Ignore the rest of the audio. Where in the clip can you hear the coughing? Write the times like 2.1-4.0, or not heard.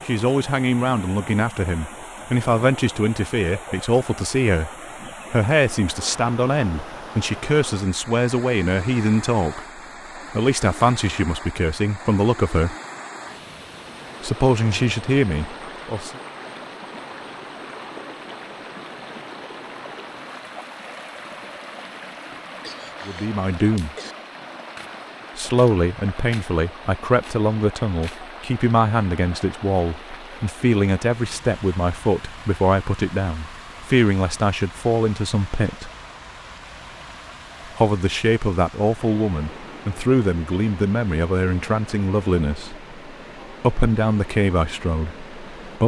22.3-24.1.